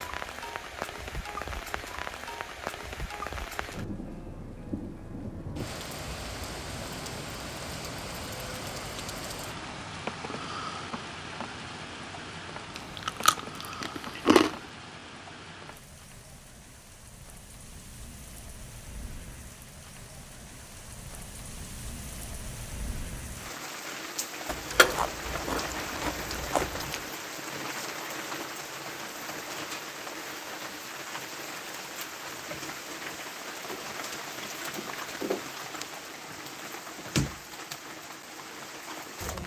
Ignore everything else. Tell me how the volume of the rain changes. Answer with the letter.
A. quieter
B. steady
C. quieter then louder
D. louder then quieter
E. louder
C.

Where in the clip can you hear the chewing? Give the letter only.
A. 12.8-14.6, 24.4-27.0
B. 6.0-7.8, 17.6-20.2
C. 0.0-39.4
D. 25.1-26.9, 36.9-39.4
A.